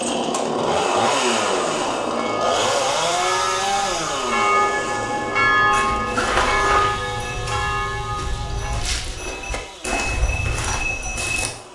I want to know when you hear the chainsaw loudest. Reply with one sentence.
The loudest moment of the chainsaw is at 1 second.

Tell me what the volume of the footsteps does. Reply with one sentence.
The loudness of the footsteps goes down, then up.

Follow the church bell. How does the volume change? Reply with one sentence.
The volume of the church bell goes up, then down.